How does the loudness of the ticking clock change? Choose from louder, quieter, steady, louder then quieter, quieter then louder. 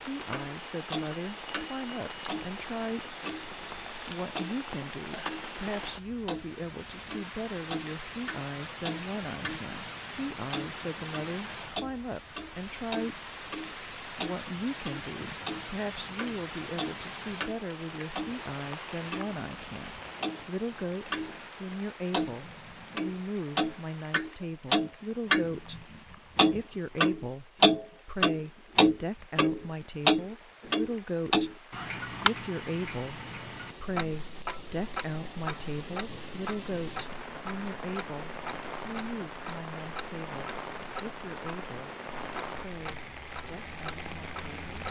louder then quieter.